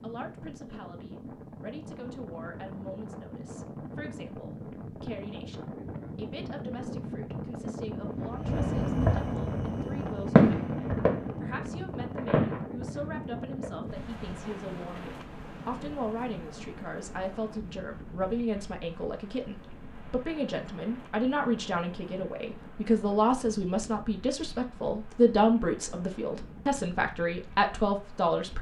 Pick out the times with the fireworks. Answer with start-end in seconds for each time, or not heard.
8.2-13.8.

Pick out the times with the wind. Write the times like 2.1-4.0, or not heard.
0.0-28.5.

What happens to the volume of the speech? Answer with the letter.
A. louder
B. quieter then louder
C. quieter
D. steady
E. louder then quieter
A.